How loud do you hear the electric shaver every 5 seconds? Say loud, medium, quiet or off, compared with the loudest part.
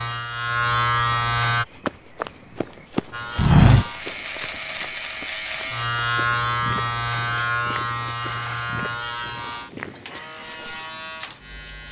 loud, loud, medium.